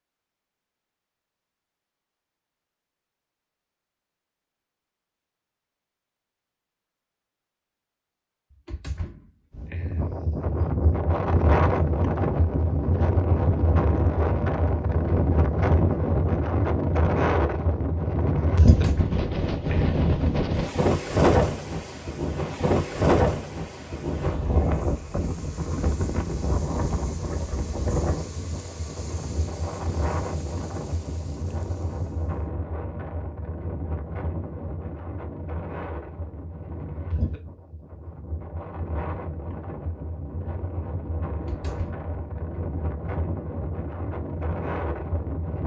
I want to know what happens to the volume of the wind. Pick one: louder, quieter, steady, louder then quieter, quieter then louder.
quieter.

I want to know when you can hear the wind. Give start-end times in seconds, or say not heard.
9.6-45.6.